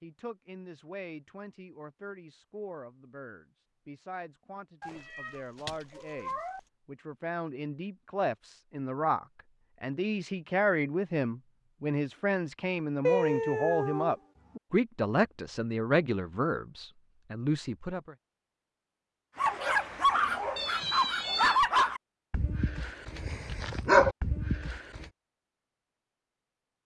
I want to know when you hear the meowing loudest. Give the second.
13 s.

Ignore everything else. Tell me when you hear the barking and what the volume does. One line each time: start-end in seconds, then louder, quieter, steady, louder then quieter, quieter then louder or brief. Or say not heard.
19.4-25.1 quieter then louder.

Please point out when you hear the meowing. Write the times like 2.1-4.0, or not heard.
4.8-6.6, 13.0-14.6, 20.6-21.6.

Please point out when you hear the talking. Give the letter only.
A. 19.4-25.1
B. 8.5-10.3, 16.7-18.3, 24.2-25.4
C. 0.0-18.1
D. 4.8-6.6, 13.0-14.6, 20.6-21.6
C.